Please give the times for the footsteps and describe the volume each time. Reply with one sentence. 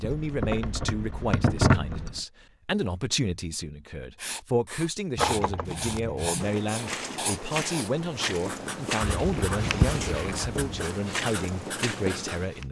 You can hear the footsteps from 5.9 to 12.6 s, at a steady volume.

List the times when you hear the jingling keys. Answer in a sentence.
The jingling keys can be heard from 0.0 to 2.2 s, from 5.2 to 6.5 s and from 9.0 to 10.8 s.